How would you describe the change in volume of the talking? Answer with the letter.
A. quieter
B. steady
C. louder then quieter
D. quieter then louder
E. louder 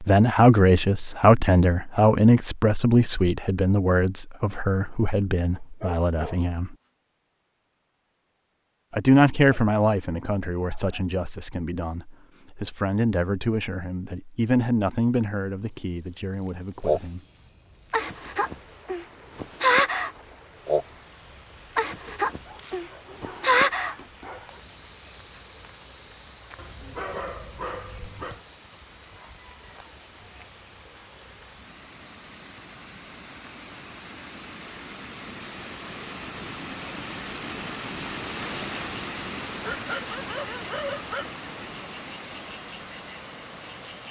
A.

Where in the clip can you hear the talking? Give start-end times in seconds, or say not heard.
0.0-6.8, 8.9-17.2.